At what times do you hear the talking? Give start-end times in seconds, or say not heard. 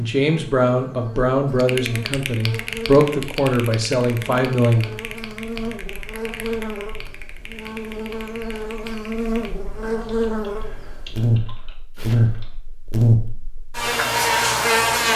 0.0-4.9.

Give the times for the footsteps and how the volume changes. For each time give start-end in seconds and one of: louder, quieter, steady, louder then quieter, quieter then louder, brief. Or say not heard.
not heard.